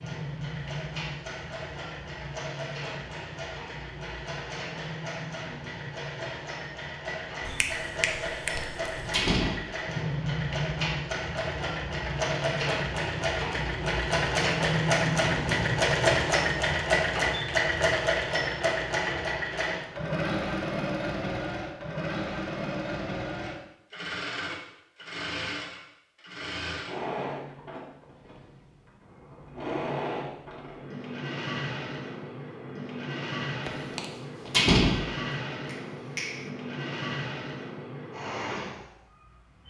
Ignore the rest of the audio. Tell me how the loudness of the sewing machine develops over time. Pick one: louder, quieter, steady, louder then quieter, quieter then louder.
louder then quieter.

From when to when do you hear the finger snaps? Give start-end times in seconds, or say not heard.
7.5-9.3, 35.6-36.5.